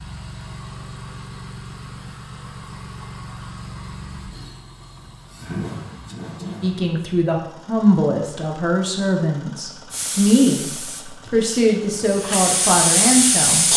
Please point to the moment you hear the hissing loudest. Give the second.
13 s.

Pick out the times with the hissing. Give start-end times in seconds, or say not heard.
9.9-13.7.